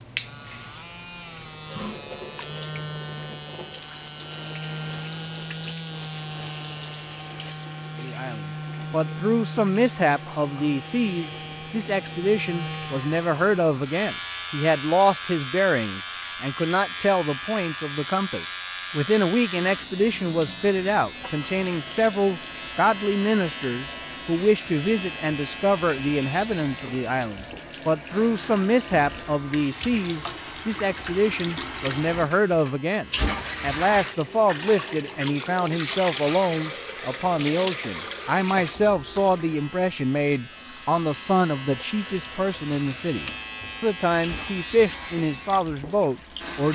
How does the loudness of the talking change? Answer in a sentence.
The loudness of the talking stays about the same.